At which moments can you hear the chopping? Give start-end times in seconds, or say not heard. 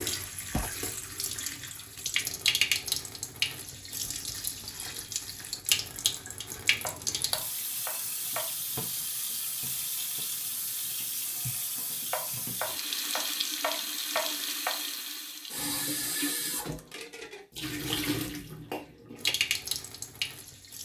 6.8-8.5, 12.1-14.8.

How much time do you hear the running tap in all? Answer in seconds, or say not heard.
21 s.